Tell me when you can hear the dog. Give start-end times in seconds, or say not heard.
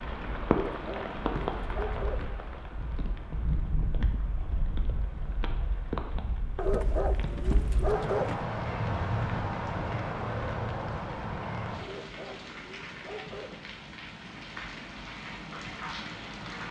0.5-2.4, 6.5-8.4, 11.8-13.7.